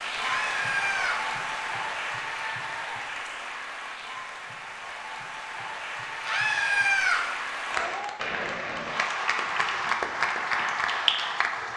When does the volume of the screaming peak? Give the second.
7 s.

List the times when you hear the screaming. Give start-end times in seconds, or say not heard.
0.2-1.2, 6.2-7.2.